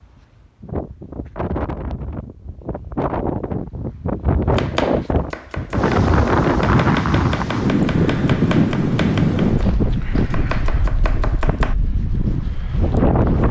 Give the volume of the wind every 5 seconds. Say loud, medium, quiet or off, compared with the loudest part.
medium, loud, medium.